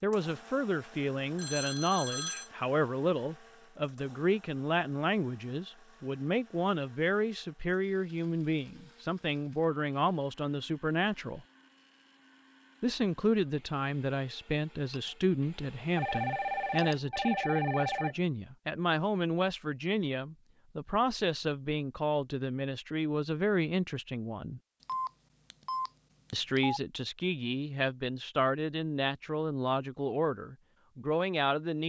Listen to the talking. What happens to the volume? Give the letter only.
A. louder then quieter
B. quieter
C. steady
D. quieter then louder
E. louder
C.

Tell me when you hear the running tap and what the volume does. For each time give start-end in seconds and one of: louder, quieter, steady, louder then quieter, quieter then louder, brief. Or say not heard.
not heard.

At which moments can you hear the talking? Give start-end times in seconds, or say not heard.
0.0-11.4, 12.8-24.6, 26.3-31.8.